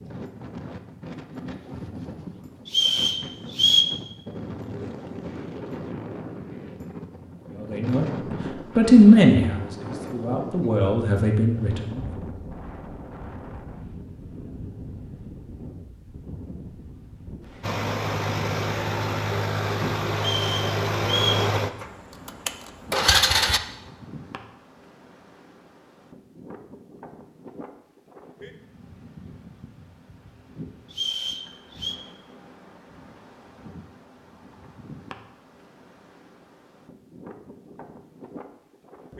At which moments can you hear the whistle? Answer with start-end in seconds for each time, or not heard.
2.6-3.9, 20.1-21.4, 30.9-31.9.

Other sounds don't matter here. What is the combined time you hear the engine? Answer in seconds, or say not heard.
6 s.